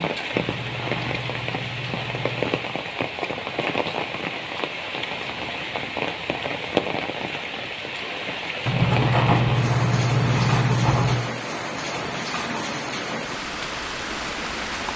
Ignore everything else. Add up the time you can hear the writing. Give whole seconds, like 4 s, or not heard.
5 s.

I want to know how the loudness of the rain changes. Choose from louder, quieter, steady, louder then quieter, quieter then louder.
steady.